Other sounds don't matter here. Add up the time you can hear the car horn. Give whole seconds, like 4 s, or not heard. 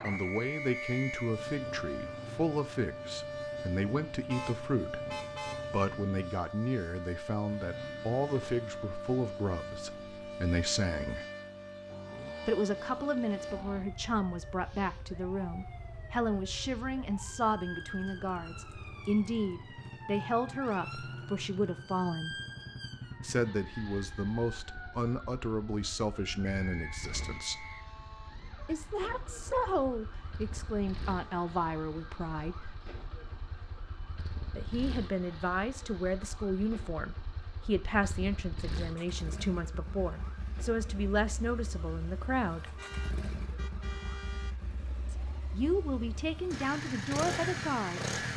3 s.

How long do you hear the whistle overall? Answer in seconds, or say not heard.
3 s.